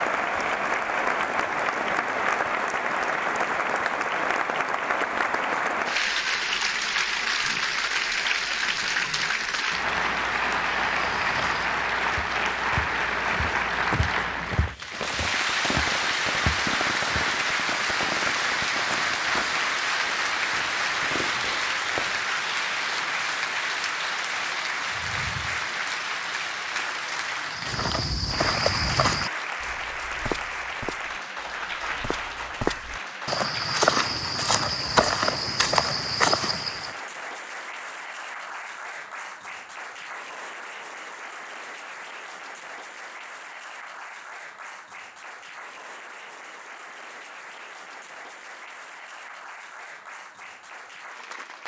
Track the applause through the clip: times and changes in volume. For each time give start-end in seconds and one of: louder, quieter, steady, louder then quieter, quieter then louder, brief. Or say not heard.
0.0-51.6 quieter.